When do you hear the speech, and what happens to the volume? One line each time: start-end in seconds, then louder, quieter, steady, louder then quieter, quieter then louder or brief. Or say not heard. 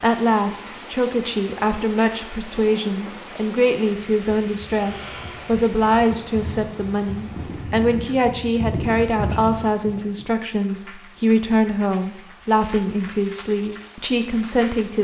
0.0-14.9 steady.